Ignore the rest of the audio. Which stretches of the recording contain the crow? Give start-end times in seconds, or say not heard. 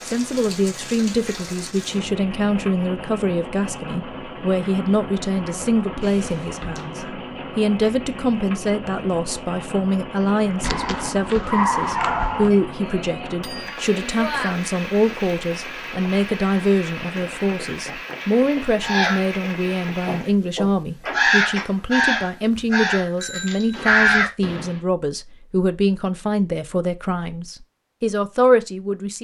18.8-24.8.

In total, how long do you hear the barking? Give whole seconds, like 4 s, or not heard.
2 s.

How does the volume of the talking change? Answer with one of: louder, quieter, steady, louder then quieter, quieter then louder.
steady.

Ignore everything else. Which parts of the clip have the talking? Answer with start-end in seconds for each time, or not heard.
0.1-29.1.